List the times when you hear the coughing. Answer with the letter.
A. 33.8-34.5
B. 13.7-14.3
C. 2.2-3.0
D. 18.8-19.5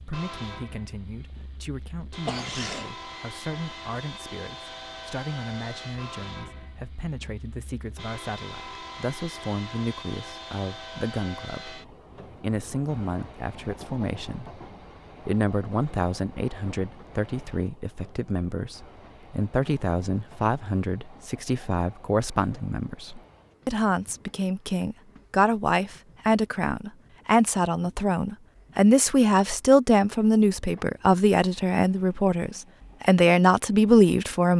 C.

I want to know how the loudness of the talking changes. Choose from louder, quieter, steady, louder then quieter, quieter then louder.
louder.